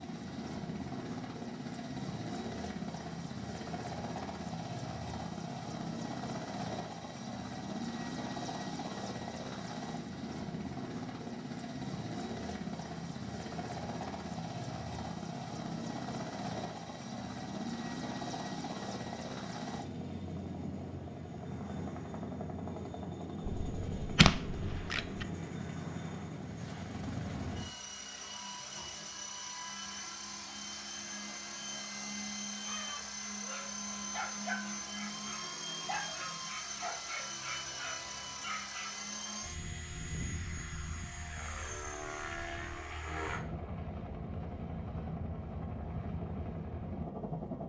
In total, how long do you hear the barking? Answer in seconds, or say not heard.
6 s.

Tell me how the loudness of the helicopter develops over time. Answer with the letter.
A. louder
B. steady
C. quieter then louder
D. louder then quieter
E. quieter
B.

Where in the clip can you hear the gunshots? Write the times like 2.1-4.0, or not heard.
23.4-25.2.